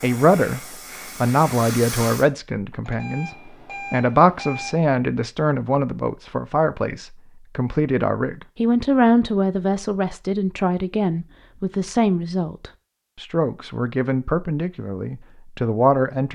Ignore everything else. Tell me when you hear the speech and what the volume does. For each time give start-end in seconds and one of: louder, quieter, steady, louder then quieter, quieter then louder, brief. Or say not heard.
0.0-16.3 steady.